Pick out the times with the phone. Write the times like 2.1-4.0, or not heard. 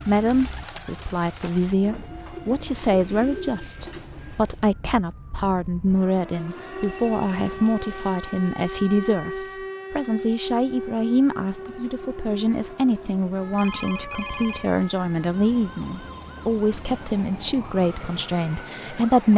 13.6-14.8.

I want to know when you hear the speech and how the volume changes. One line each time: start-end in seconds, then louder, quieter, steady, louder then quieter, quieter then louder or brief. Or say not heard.
0.1-19.3 steady.